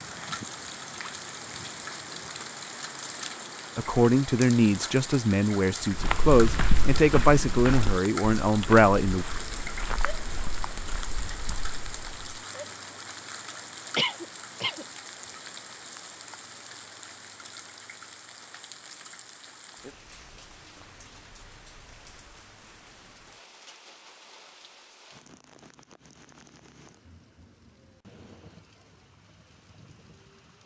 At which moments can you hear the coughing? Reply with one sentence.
You can hear the coughing from 13.9 to 14.8 s.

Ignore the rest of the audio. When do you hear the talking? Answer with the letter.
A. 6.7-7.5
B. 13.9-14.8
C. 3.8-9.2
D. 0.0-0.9
C.